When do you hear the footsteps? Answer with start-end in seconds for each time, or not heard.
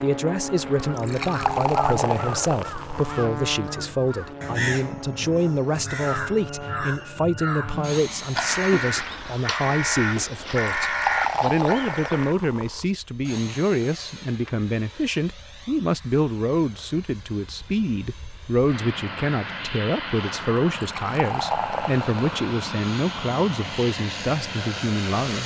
not heard.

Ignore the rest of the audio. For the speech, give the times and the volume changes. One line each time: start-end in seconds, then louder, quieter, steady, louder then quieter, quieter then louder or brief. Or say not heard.
0.0-25.4 steady.